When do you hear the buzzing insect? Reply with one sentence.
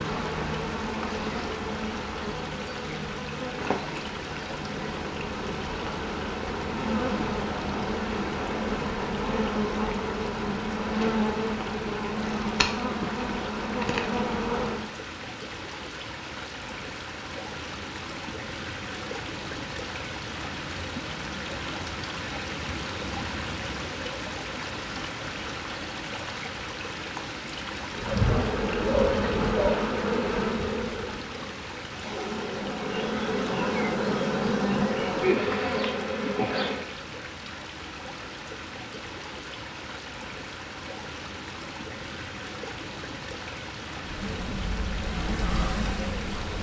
You can hear the buzzing insect from 0.0 to 14.9 s, from 27.9 to 36.9 s and from 44.0 to 46.5 s.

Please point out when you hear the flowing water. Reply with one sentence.
The flowing water can be heard from 0.0 to 46.5 s.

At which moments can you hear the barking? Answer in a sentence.
You can hear the barking from 28.2 to 29.9 s.